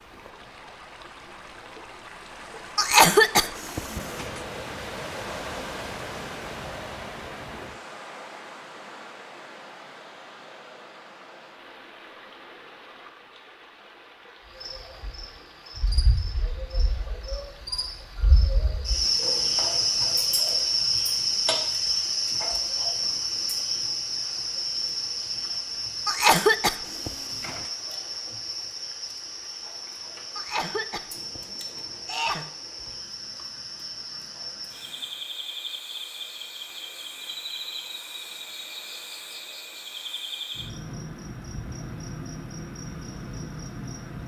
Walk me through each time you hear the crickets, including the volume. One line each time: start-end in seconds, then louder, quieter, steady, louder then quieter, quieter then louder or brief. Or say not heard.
14.6-44.2 quieter.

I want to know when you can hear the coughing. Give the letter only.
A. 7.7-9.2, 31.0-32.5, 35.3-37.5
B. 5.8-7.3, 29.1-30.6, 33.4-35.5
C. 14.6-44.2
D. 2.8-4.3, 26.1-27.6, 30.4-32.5
D.